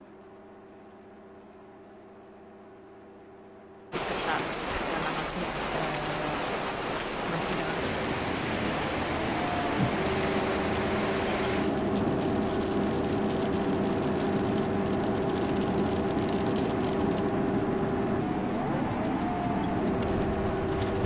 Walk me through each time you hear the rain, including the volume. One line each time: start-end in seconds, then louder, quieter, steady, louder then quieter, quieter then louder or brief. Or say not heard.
3.9-21.0 steady.